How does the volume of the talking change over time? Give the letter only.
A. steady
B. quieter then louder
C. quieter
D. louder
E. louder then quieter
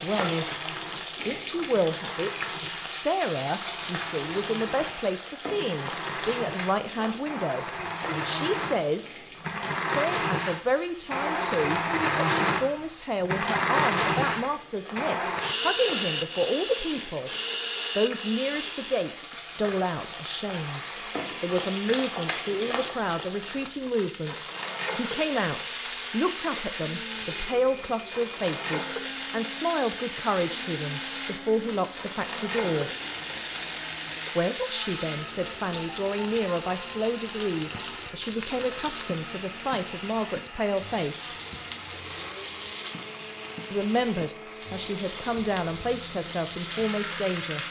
A.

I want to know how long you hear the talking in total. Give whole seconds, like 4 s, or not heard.
43 s.